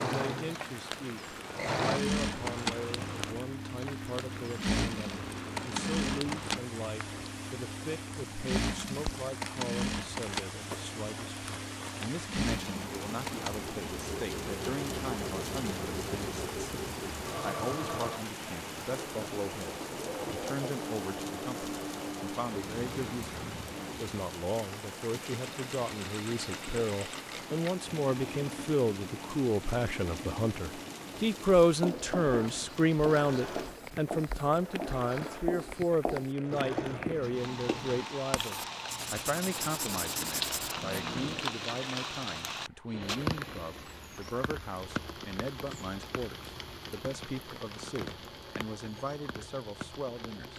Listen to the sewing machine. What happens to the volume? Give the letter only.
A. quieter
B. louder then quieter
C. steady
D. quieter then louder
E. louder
A.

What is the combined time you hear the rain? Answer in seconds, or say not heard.
50 s.